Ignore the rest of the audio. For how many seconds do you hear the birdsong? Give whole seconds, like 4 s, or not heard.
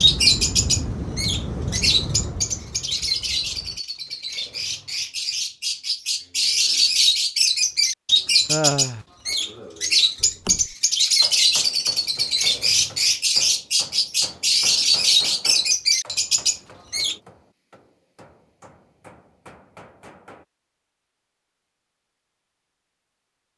17 s.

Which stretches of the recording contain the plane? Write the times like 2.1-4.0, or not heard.
0.0-3.8.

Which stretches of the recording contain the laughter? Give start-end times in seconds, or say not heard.
8.4-9.1.